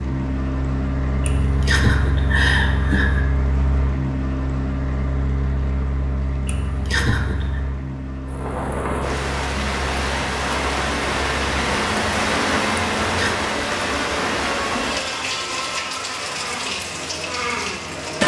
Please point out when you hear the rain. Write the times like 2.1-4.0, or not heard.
8.2-18.2.